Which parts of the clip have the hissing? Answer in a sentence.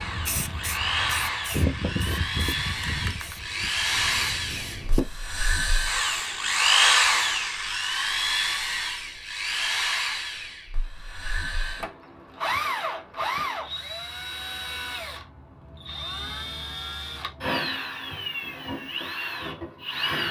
The hissing can be heard from 0.0 to 7.7 s.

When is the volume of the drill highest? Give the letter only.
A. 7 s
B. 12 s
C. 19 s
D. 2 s
A.